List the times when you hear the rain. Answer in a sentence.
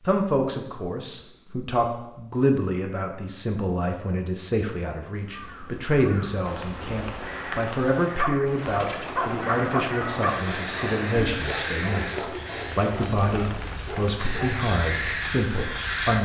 You can hear the rain from 6.4 to 16.2 s.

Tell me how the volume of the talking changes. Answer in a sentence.
The volume of the talking stays about the same.